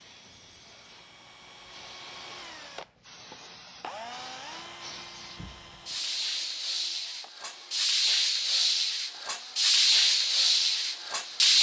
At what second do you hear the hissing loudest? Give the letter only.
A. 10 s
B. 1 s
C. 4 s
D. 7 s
A.